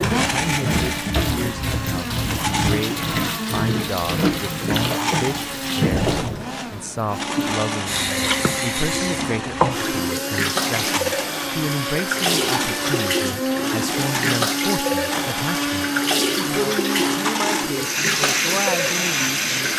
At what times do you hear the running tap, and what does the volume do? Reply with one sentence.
The running tap can be heard from 0.0 to 19.7 s, at a steady volume.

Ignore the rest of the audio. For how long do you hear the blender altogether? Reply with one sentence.
The blender can be heard for 20 seconds in total.